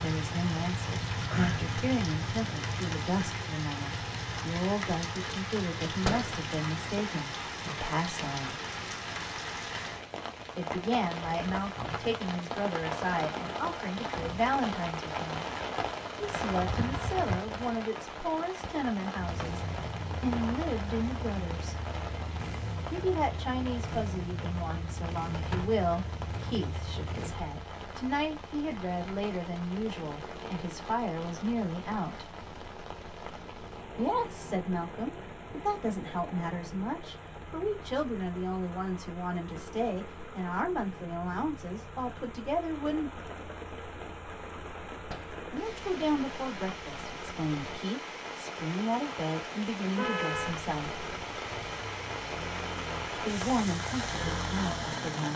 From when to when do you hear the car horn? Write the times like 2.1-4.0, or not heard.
50.0-50.5.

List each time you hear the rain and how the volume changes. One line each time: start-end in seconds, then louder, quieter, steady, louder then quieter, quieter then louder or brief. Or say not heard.
0.0-55.3 quieter then louder.